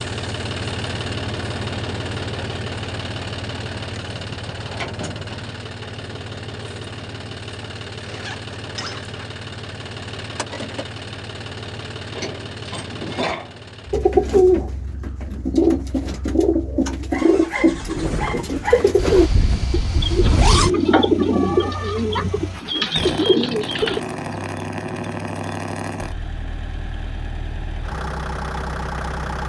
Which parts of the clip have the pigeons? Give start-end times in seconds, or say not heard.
13.9-24.0.